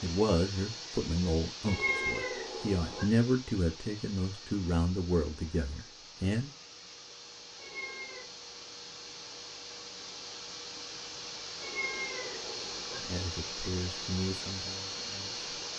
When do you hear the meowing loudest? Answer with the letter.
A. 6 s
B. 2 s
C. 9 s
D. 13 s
B.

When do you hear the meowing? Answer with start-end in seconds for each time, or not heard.
1.6-3.0, 7.5-8.3, 11.6-13.0.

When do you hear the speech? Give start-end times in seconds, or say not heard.
0.0-6.5, 13.0-15.4.